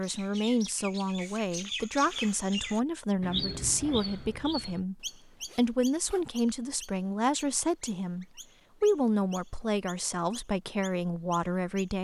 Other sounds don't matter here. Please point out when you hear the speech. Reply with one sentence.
The speech can be heard from 0.0 to 11.9 s.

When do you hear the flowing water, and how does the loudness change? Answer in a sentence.
You can't hear the flowing water here.